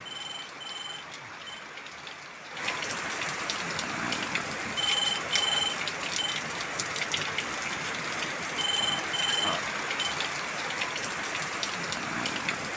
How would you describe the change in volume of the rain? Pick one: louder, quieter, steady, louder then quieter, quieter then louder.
louder.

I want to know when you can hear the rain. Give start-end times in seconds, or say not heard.
0.0-12.7.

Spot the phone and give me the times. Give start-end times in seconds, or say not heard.
0.1-1.6, 4.8-6.4, 8.6-10.2.